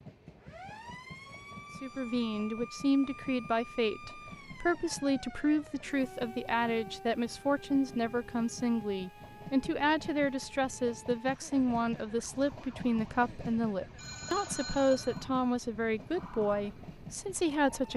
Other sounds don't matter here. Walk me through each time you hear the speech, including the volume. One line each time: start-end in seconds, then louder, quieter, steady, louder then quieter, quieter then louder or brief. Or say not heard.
1.8-17.9 steady.